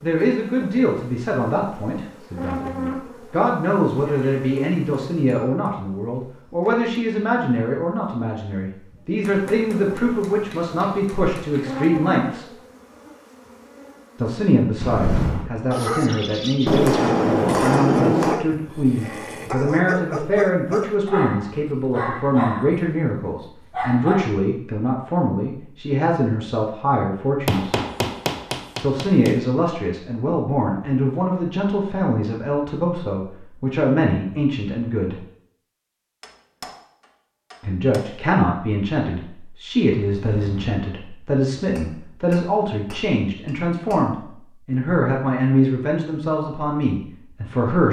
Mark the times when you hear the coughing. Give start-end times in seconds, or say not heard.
14.8-15.5, 40.0-40.8.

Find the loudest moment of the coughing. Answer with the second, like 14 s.
15 s.